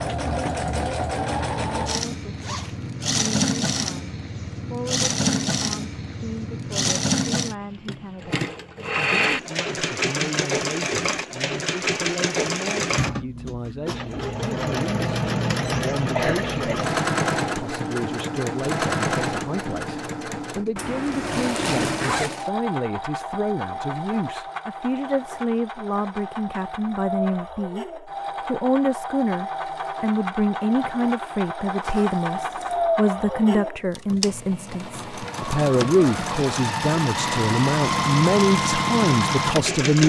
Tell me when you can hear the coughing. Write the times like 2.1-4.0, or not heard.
16.1-16.8.